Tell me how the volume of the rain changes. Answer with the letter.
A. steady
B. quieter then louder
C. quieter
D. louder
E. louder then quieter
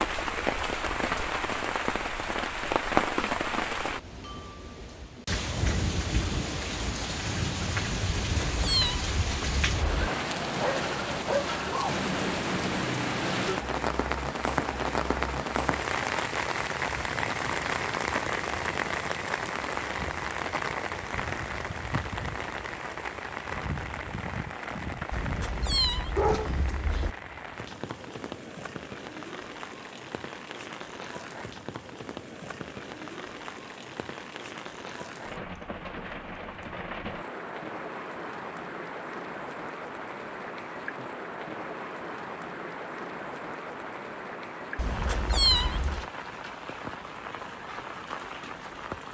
C.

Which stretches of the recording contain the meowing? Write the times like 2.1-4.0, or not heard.
8.1-10.1, 25.1-27.1, 44.8-46.0.